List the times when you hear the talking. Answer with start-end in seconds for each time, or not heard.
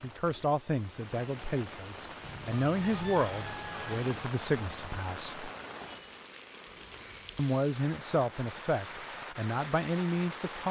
0.0-5.5, 7.3-10.6.